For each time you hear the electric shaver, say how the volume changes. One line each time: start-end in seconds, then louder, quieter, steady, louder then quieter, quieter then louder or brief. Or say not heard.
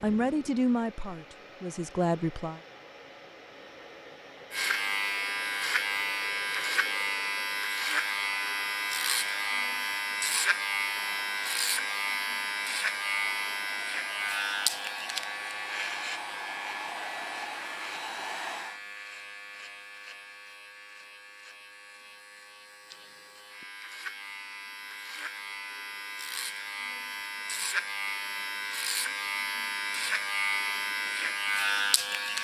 4.5-32.3 quieter then louder.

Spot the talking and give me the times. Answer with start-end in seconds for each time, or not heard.
0.0-2.6.